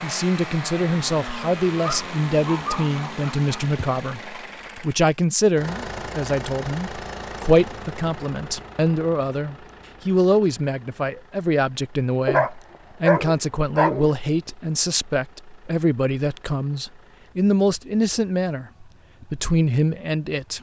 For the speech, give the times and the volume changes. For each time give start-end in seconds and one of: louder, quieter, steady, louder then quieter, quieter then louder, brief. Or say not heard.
0.0-20.5 steady.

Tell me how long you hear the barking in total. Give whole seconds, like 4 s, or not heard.
4 s.